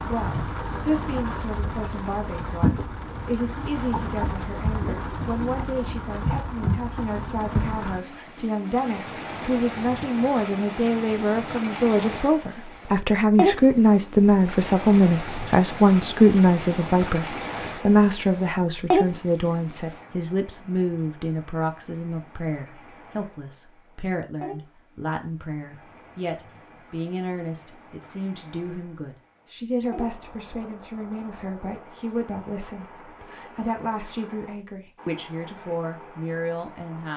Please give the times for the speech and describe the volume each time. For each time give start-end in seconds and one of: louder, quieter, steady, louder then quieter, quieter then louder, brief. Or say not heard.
0.0-37.1 louder then quieter.